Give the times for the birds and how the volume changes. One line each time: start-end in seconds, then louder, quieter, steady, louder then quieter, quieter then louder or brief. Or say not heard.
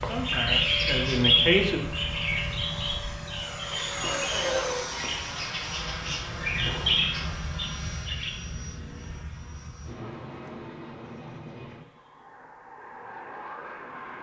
0.0-8.3 quieter then louder.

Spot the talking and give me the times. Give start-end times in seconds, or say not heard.
0.0-1.8.